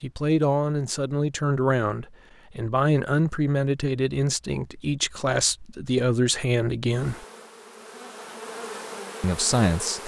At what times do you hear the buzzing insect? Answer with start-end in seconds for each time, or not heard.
6.8-10.0.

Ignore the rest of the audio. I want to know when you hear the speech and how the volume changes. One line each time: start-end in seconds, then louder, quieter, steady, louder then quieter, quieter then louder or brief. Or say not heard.
0.0-7.2 steady
9.2-10.0 brief.